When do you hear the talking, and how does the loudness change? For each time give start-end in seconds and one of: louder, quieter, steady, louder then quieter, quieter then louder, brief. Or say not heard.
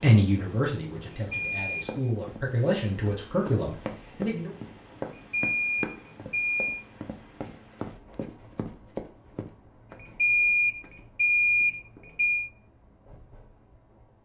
0.0-4.5 quieter then louder.